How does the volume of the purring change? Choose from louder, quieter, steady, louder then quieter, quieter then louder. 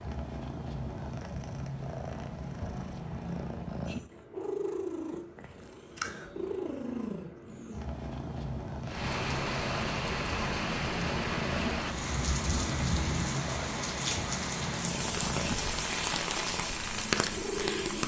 steady.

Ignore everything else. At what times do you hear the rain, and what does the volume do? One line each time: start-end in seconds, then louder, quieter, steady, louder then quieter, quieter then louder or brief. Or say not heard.
8.8-18.0 steady.